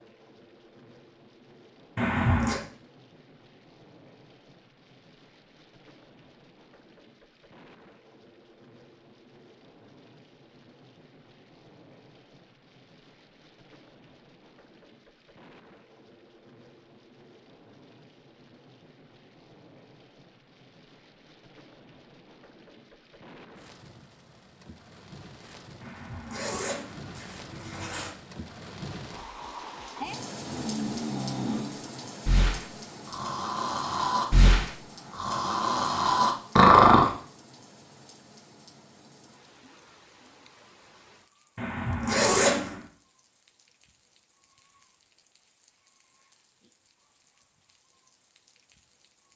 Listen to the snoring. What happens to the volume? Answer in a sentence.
The volume of the snoring goes up.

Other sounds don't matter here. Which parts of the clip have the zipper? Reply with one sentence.
You can hear the zipper from 1.9 to 2.6 s, from 25.8 to 28.1 s and from 41.5 to 42.8 s.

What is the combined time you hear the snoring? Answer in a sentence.
The snoring can be heard for 7 seconds in total.